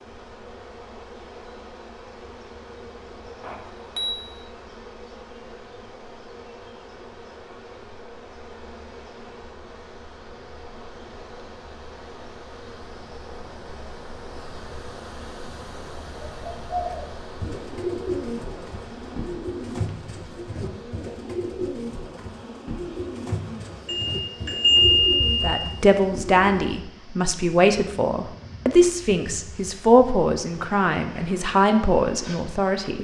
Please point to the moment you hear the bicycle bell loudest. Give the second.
25 s.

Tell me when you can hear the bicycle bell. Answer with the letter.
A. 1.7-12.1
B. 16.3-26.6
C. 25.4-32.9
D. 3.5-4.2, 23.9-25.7
D.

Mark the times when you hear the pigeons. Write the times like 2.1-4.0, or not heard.
16.3-26.6.